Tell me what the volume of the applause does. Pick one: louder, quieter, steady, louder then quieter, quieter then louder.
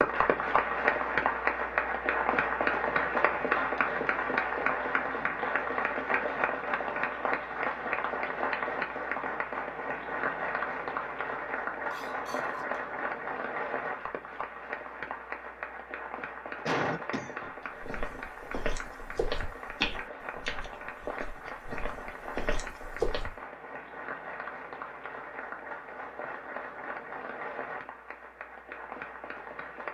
quieter.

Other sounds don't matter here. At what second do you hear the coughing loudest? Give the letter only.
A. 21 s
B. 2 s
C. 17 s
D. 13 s
C.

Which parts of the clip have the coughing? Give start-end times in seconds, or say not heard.
11.9-12.8, 16.6-18.0.